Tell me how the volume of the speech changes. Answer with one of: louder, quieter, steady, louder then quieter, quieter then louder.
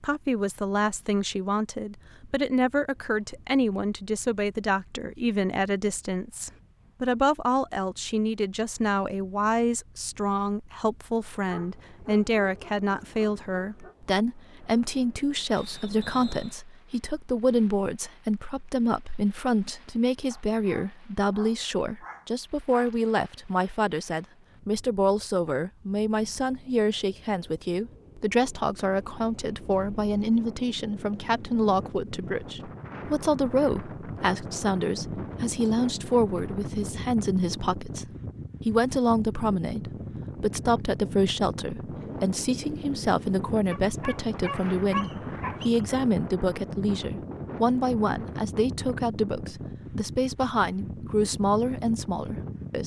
steady.